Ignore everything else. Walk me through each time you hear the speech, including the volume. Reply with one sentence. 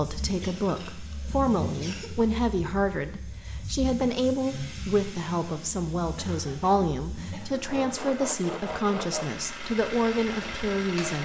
You can hear the speech from 0.0 to 11.1 s, at a steady volume.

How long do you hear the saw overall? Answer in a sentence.
The saw can be heard for 2 seconds in total.